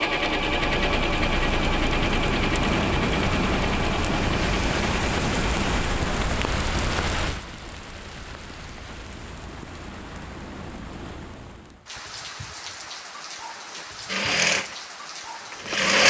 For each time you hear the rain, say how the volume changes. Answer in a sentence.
The rain can be heard from 0.1 to 15.9 s, getting quieter.